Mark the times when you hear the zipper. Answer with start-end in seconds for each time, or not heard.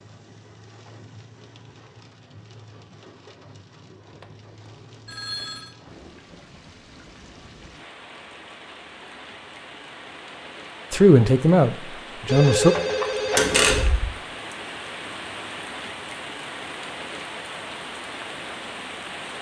not heard.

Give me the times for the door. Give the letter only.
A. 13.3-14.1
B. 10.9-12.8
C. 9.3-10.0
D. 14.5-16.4
A.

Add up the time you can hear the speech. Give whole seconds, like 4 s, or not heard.
2 s.